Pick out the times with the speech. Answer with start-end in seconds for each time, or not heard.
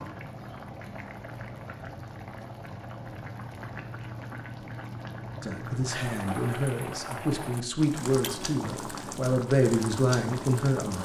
5.4-10.9.